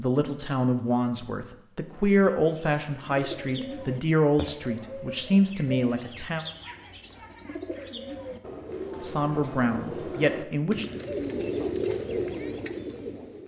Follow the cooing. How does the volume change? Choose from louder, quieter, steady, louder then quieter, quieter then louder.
louder.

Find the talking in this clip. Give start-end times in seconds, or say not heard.
0.0-6.5, 9.0-10.8.